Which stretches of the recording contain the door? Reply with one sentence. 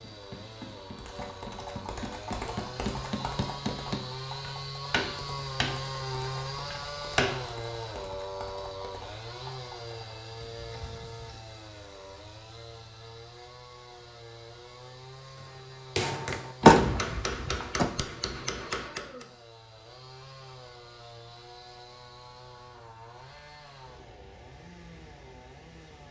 You can hear the door from 16.6 to 17.9 s.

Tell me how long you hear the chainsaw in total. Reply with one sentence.
The chainsaw can be heard for 26 seconds in total.